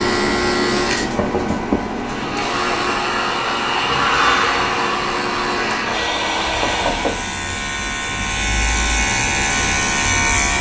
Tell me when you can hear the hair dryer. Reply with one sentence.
You can hear the hair dryer from 1.9 to 7.3 s.